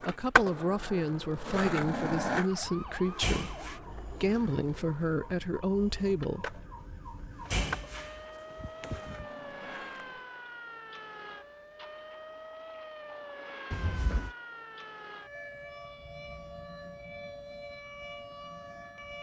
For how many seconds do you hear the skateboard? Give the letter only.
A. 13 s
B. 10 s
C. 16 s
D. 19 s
B.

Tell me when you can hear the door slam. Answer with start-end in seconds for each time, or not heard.
2.6-3.8, 6.8-9.2, 13.7-14.3.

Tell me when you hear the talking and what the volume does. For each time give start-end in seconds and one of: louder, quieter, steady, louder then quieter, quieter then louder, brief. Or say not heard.
0.1-6.6 steady.